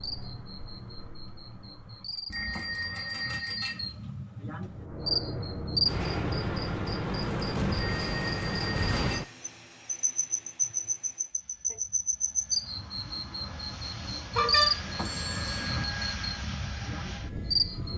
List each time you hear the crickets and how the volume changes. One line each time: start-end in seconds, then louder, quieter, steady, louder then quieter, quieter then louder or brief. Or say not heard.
0.0-17.9 louder.